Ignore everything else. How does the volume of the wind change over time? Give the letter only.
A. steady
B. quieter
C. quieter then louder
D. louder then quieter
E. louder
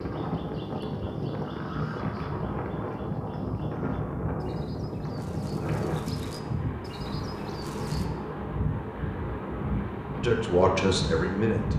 A.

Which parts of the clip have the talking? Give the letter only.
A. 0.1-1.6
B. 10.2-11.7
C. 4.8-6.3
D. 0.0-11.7
B.